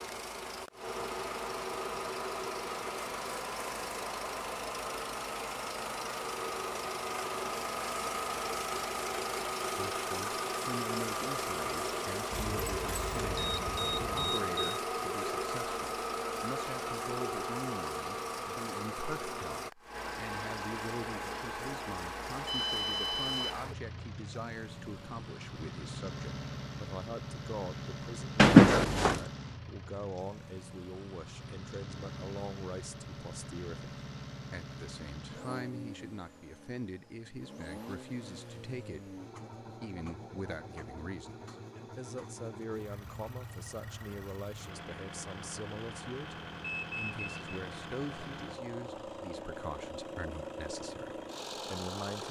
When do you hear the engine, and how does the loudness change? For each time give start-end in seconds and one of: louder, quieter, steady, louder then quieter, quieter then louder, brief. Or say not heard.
0.0-52.2 quieter.